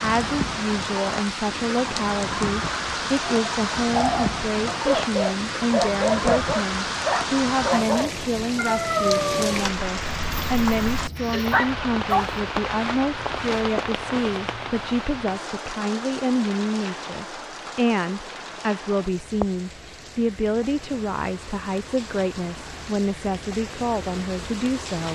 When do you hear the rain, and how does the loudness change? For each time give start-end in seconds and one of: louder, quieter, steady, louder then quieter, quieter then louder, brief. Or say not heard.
0.0-25.1 quieter.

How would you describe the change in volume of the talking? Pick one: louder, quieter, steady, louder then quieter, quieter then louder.
steady.